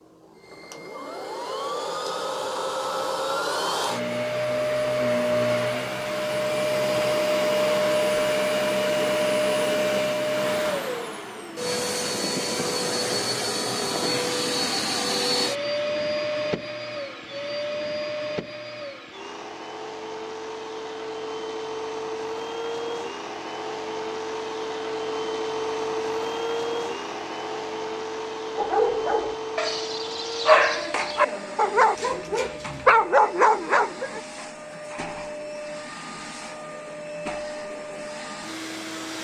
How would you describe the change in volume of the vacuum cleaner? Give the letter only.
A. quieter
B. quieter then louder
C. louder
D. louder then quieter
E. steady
A.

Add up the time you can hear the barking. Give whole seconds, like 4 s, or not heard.
6 s.